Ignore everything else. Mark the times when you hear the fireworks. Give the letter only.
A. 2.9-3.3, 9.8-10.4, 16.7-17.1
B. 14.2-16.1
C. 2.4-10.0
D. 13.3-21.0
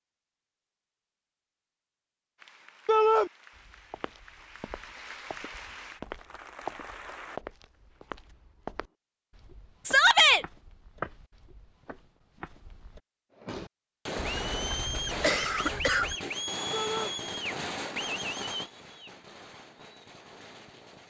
D.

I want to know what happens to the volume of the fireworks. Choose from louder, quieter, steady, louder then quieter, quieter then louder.
quieter.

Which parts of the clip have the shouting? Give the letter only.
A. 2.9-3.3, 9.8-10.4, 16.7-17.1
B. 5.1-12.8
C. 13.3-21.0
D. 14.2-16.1
A.